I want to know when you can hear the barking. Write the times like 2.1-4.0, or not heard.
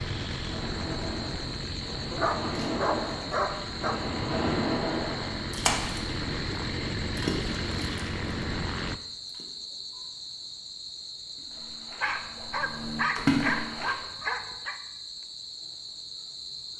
2.1-4.0, 12.0-14.8.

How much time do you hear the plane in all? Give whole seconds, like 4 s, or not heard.
9 s.